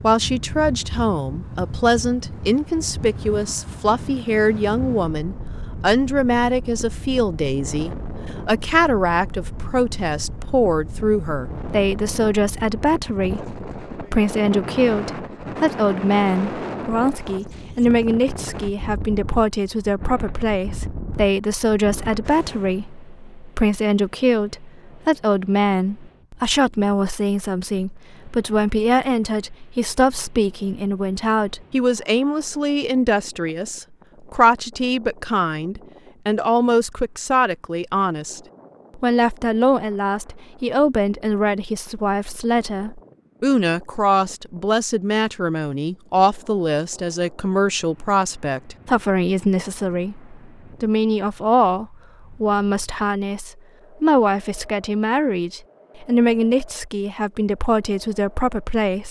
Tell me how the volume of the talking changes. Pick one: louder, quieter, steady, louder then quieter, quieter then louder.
steady.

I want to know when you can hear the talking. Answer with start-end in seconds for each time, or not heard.
0.0-59.0.